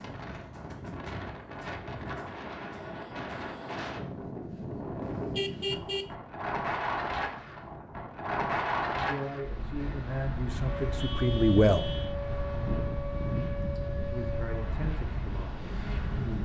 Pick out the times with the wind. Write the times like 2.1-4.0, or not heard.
0.0-16.4.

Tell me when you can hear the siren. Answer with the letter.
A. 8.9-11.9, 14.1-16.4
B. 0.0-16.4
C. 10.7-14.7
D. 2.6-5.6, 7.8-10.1
C.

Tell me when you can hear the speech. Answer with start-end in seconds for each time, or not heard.
8.9-11.9, 14.1-16.4.